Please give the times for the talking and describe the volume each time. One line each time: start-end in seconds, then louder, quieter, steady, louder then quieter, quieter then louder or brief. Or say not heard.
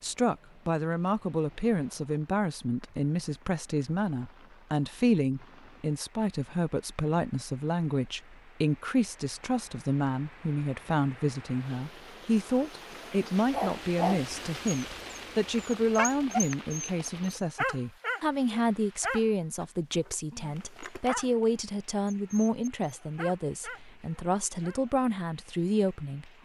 0.0-26.4 steady.